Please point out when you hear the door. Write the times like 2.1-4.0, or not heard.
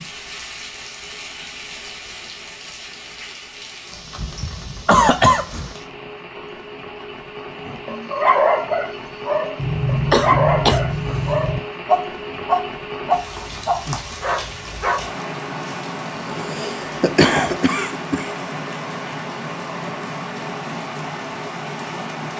not heard.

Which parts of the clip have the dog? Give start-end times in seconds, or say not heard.
7.7-15.1.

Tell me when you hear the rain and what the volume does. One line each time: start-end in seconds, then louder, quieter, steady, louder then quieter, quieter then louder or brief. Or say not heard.
0.0-22.3 louder.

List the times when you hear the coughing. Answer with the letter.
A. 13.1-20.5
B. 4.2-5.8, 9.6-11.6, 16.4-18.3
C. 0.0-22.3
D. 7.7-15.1
B.